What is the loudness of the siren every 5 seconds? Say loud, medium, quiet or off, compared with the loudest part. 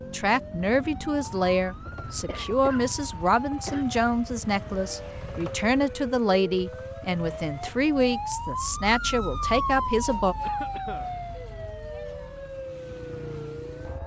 medium, loud, loud.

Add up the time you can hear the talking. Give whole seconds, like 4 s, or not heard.
10 s.